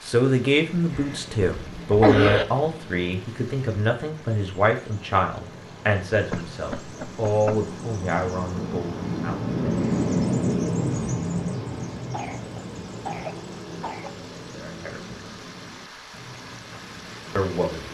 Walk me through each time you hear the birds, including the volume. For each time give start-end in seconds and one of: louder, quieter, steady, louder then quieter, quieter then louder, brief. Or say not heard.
0.0-17.8 louder then quieter.